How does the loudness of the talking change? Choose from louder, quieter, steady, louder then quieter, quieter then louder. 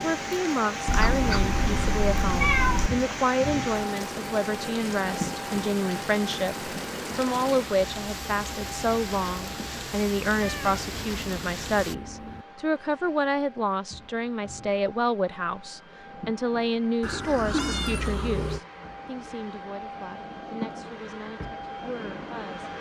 quieter.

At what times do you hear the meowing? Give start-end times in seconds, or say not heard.
0.8-2.9, 10.4-12.4, 17.0-18.6.